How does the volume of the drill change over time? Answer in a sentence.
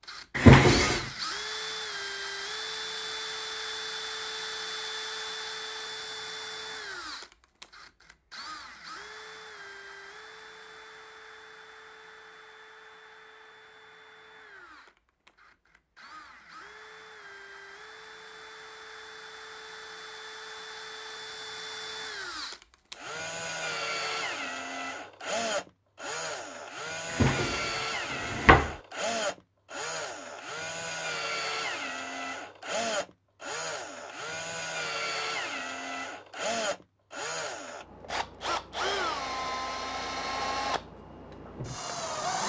The volume of the drill goes down, then up.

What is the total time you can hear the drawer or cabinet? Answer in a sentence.
You can hear the drawer or cabinet for 2 seconds altogether.